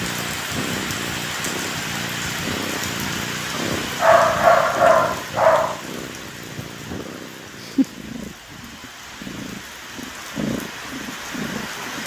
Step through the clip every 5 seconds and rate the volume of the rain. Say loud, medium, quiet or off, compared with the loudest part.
loud, medium, medium.